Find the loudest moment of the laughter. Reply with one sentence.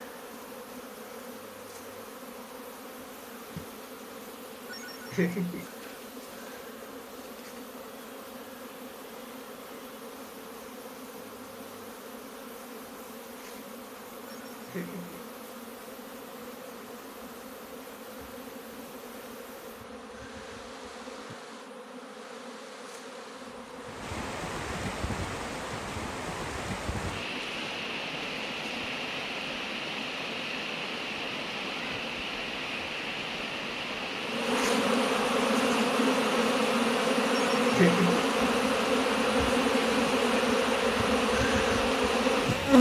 The loudest moment of the laughter is at 38 seconds.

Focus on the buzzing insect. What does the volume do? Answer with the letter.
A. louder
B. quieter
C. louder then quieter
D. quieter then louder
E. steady
A.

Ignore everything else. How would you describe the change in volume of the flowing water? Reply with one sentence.
The volume of the flowing water goes up.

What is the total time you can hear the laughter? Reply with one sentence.
You can hear the laughter for 3 seconds altogether.